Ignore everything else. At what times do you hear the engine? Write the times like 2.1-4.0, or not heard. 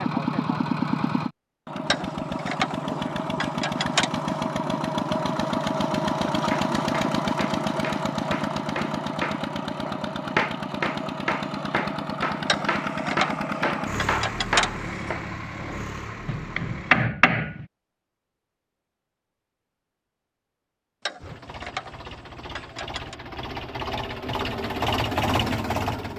0.0-17.1, 21.2-26.1.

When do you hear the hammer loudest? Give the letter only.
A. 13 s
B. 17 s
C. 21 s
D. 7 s
B.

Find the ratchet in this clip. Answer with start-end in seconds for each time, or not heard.
1.9-4.3, 12.4-15.1, 21.1-23.1.